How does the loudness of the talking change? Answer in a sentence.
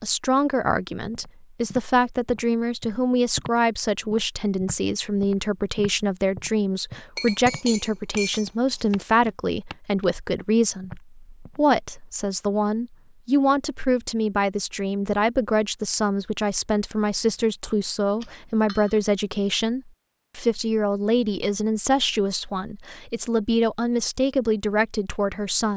The volume of the talking stays about the same.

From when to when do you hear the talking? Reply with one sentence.
The talking can be heard from 0.0 to 25.7 s.